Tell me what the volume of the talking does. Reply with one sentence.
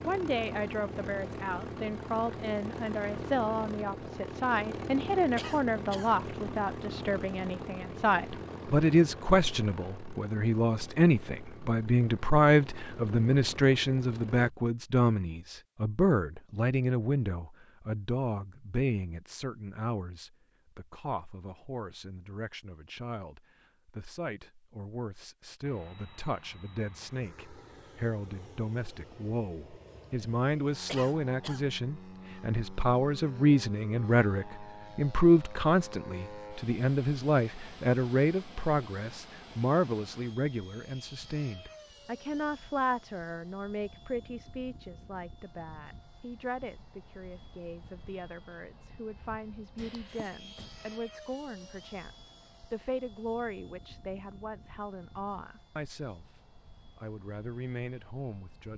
The volume of the talking goes down.